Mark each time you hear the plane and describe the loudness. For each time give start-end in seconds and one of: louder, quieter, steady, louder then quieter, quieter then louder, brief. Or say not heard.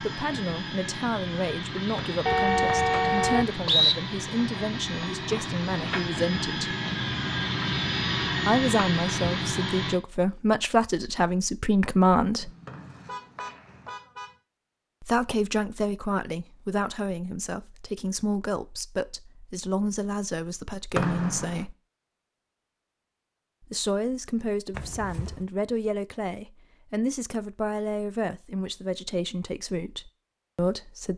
0.0-10.0 louder.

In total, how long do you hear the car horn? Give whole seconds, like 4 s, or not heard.
4 s.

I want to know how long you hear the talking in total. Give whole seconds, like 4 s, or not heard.
25 s.